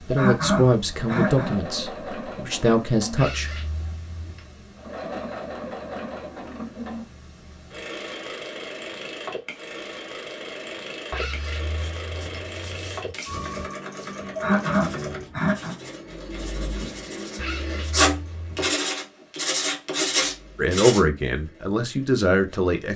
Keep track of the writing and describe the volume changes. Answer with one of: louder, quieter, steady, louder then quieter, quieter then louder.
louder.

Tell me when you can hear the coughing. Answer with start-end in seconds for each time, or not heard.
0.1-1.5, 14.3-15.8.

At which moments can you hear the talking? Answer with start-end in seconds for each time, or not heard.
0.1-3.5, 20.6-22.9.